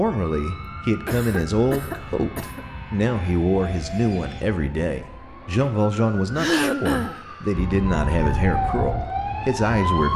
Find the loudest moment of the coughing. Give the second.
7 s.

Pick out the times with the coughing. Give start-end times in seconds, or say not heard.
1.1-2.6, 6.3-7.2.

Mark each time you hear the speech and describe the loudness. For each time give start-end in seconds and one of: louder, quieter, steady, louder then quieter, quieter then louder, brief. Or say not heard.
0.0-10.1 steady.